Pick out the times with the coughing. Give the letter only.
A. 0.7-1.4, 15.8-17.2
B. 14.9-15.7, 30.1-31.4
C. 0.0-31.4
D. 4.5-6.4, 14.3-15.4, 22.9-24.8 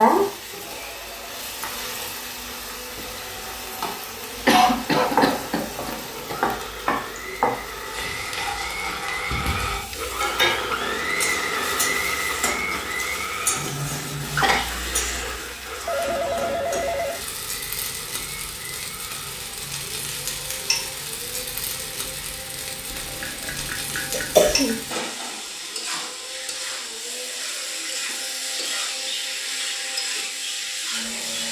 D.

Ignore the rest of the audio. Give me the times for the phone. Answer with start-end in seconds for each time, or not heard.
0.7-1.4, 15.8-17.2.